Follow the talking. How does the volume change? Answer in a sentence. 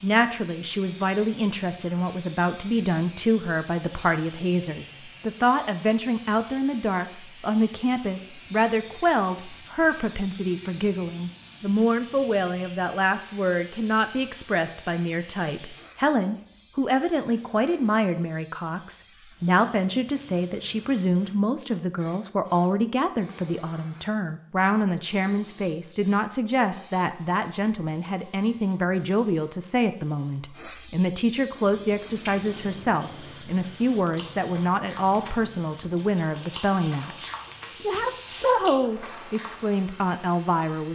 The volume of the talking stays about the same.